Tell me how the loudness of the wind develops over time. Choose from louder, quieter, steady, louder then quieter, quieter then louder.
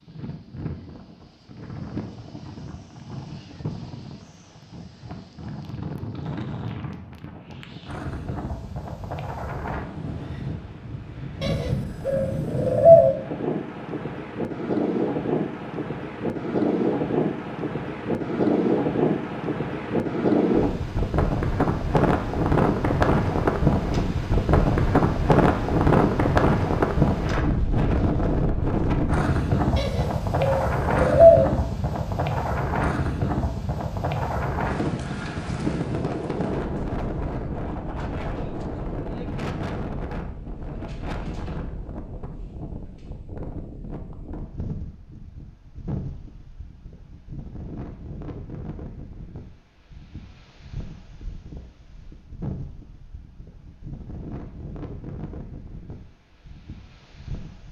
louder then quieter.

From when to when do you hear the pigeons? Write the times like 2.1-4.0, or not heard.
11.4-13.2, 29.8-31.5.